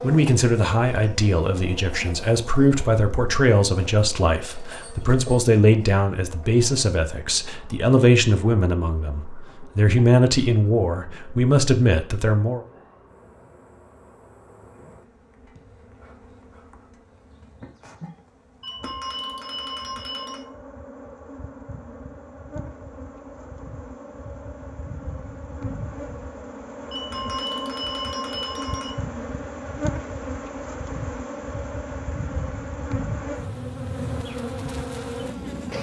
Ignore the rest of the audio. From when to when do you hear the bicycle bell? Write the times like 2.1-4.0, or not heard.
4.7-5.3, 18.6-20.4, 26.9-28.9.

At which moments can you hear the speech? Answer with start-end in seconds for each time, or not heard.
0.0-12.6.